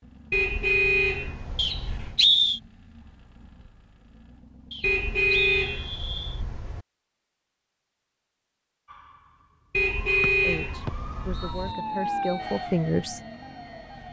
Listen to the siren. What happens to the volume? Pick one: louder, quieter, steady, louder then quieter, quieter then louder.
louder then quieter.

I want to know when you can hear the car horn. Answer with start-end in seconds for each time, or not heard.
0.3-2.1, 4.8-6.8, 9.7-11.8.